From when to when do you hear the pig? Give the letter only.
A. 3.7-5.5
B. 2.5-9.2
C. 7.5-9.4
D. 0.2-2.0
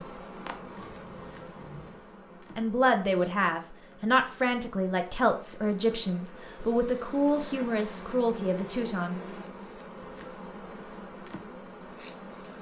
D.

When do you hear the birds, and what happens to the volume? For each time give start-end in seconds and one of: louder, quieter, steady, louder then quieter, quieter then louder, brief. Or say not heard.
not heard.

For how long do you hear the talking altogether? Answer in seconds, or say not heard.
7 s.